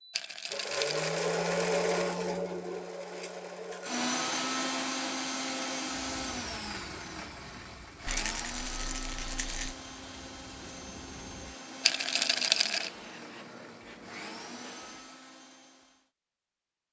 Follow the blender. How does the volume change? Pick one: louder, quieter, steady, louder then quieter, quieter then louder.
quieter.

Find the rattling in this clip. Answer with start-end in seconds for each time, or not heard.
0.1-1.1, 8.1-9.8, 11.8-12.9.